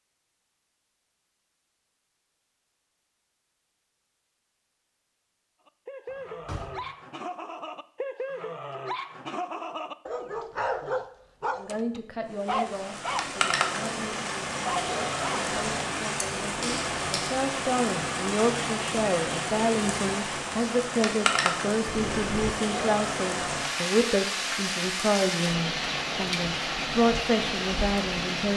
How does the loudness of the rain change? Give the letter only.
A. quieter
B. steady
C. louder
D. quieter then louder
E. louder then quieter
B.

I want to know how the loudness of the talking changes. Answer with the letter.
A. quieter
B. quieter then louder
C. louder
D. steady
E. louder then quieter
C.